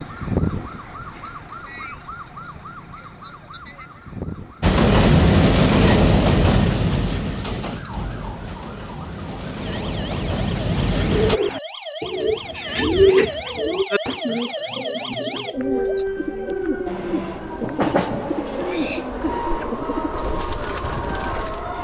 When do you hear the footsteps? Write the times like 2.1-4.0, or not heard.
not heard.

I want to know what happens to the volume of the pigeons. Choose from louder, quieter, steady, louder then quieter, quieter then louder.
quieter.